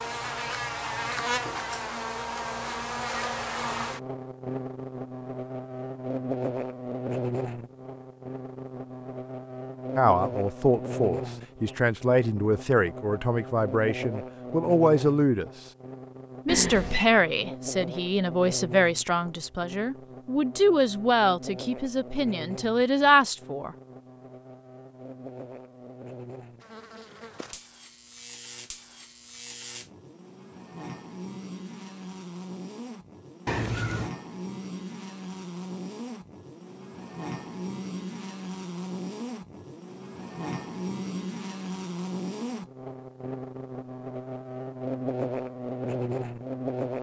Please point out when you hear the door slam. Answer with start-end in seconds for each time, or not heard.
not heard.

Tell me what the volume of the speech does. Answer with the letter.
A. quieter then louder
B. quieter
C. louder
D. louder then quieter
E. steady
E.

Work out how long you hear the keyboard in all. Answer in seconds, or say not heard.
not heard.